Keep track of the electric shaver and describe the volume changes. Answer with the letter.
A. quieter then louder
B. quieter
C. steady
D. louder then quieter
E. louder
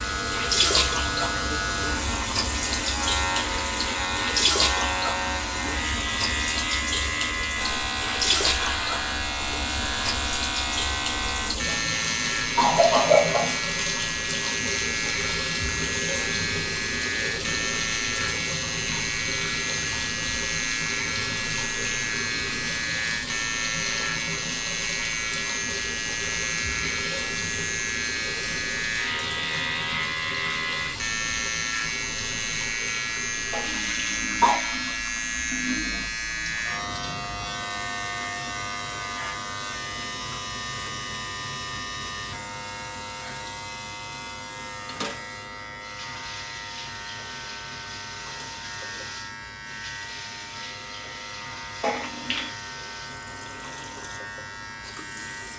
B.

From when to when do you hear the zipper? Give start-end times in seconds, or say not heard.
not heard.